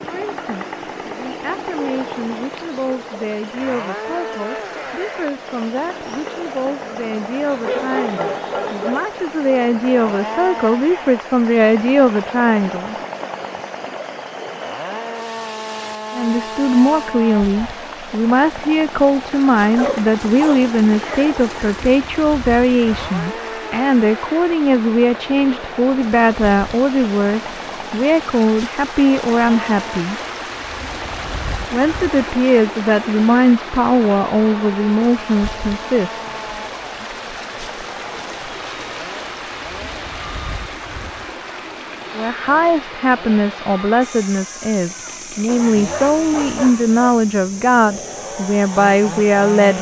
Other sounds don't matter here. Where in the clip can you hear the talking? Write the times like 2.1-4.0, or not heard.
0.0-12.9, 16.1-30.2, 31.7-36.1, 42.1-49.7.